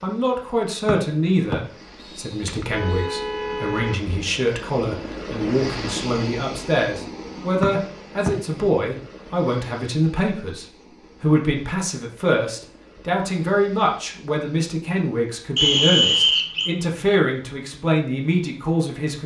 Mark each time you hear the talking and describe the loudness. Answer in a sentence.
The talking can be heard from 0.0 to 19.2 s, at a steady volume.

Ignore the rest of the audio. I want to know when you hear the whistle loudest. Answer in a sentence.
The loudest moment of the whistle is at 16 seconds.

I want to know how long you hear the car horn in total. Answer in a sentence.
The car horn can be heard for 2 seconds in total.